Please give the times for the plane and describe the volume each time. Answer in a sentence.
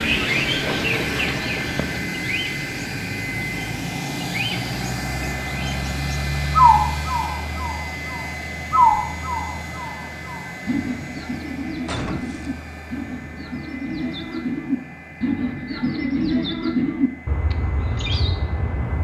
You can hear the plane from 0.0 to 18.9 s, getting quieter.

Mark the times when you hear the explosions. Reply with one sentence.
The explosions can be heard from 11.8 to 12.6 s.